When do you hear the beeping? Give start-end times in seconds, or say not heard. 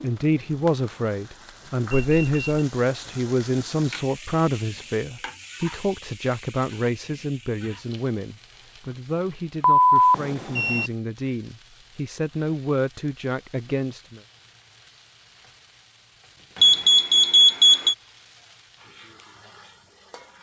1.9-2.6, 9.6-10.9, 16.6-17.9.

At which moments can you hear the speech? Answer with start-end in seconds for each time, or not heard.
0.0-14.2.